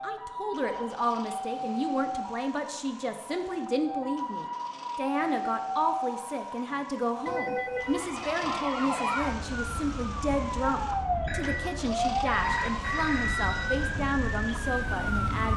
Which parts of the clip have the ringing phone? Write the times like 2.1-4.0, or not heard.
0.6-1.6, 7.2-8.7, 11.2-13.9.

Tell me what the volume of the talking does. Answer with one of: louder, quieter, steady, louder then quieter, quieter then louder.
steady.